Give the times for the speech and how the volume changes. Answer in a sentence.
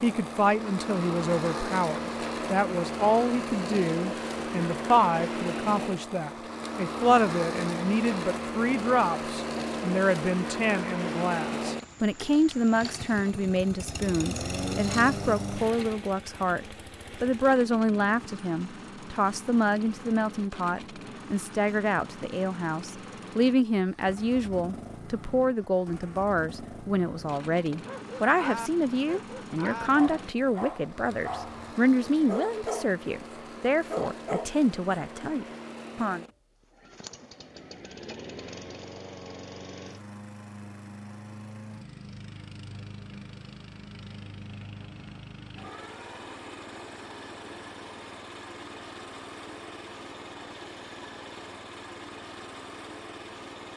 You can hear the speech from 0.0 to 36.2 s, at a steady volume.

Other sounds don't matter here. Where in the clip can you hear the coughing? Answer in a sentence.
You can't hear the coughing here.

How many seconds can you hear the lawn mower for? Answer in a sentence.
The lawn mower can be heard for 54 seconds in total.